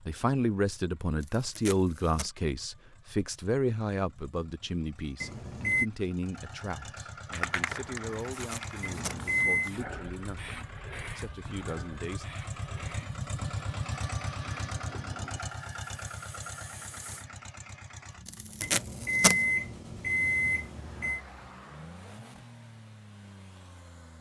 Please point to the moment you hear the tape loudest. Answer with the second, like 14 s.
19 s.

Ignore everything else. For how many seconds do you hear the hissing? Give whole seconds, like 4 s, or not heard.
10 s.